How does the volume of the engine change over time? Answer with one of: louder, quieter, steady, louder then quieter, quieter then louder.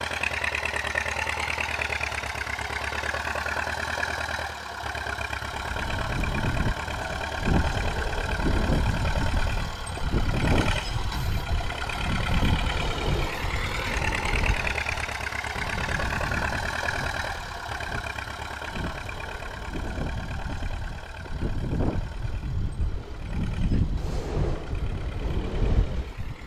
quieter.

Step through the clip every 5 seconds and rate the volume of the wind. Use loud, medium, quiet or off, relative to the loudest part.
off, loud, loud, medium, loud, loud.